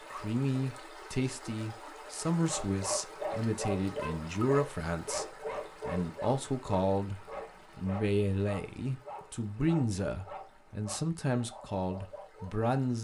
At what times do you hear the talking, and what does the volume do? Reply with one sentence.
You can hear the talking from 0.1 to 12.9 s, at a steady volume.